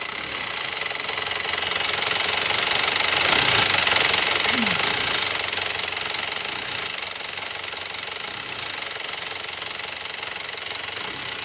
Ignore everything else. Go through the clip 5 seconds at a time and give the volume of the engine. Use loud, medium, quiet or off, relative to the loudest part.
loud, medium, medium.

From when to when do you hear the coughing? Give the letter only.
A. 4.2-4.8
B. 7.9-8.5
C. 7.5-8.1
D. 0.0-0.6
A.